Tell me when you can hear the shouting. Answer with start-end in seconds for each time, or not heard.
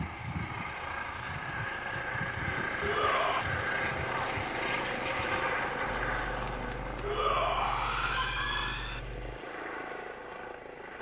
2.8-3.5, 7.0-9.0.